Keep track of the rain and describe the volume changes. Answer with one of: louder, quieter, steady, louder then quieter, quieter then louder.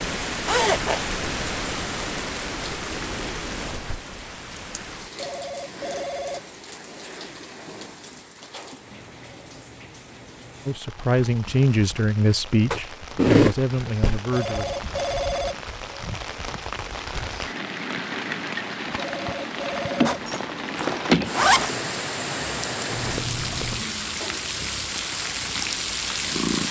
quieter then louder.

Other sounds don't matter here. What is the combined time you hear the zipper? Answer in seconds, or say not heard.
4 s.